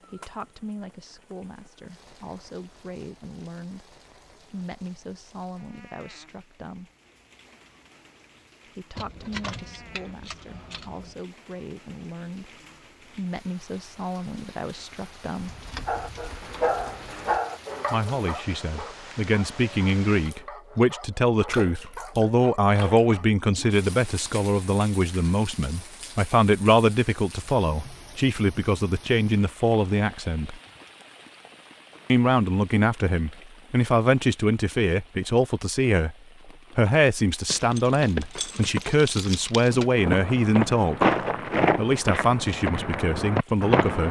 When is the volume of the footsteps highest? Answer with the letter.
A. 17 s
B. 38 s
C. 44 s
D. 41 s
D.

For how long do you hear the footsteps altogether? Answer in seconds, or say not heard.
4 s.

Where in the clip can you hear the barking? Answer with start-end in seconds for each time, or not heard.
15.8-23.3.